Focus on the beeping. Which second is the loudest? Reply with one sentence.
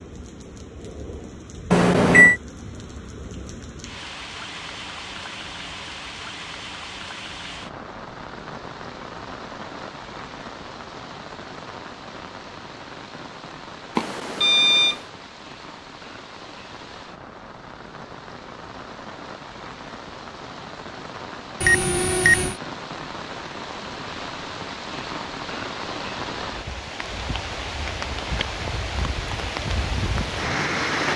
The volume of the beeping peaks at 2 seconds.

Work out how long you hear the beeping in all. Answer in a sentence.
You can hear the beeping for 3 seconds altogether.